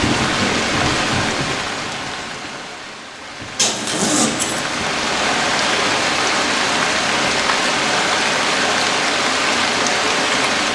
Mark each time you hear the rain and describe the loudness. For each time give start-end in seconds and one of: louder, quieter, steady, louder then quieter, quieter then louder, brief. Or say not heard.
0.0-10.7 quieter then louder.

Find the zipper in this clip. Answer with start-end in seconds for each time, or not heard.
3.5-4.6.